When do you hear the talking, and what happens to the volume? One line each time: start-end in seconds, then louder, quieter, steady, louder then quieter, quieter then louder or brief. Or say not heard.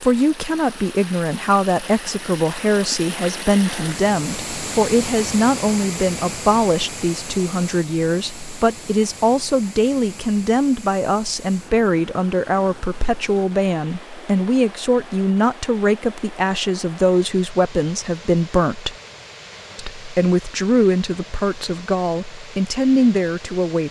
0.0-18.9 steady
19.8-23.8 quieter then louder.